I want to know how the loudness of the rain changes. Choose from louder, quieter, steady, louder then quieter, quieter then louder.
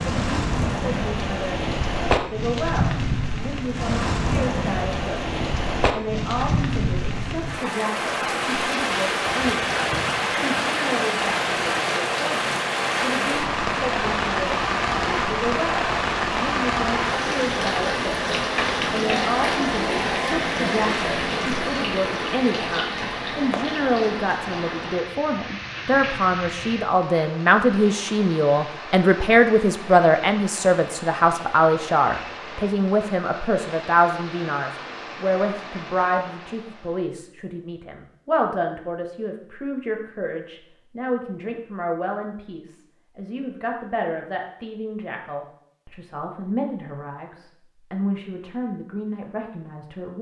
quieter.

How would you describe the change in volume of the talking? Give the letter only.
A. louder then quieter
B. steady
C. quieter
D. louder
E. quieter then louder
A.